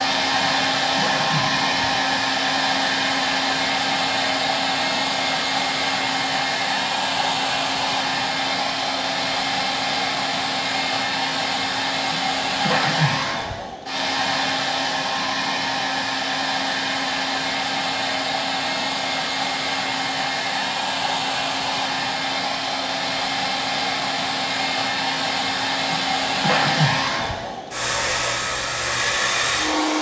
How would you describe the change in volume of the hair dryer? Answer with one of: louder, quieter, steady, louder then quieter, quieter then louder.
steady.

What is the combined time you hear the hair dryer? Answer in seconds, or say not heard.
30 s.